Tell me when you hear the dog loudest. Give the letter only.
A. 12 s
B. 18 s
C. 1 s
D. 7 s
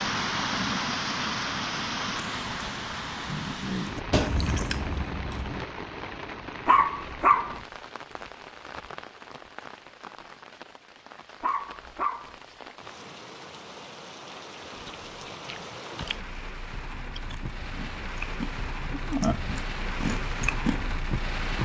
D.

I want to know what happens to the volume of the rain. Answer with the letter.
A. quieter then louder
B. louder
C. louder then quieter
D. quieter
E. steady
A.